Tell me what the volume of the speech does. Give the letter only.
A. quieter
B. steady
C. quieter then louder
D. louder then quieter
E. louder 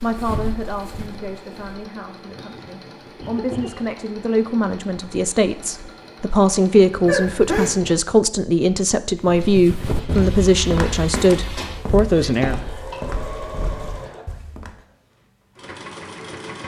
E.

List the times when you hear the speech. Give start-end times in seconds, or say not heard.
0.0-12.6.